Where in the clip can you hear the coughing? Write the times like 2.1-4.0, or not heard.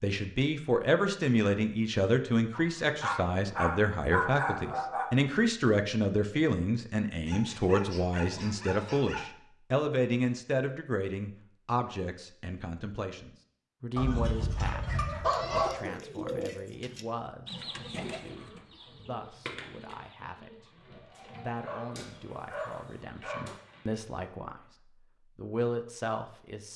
not heard.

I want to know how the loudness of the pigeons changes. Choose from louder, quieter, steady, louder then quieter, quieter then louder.
quieter.